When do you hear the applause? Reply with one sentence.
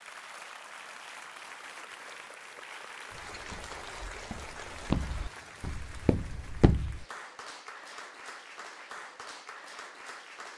You can hear the applause from 0.0 to 10.5 s.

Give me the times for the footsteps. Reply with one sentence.
The footsteps can be heard from 3.1 to 7.0 s.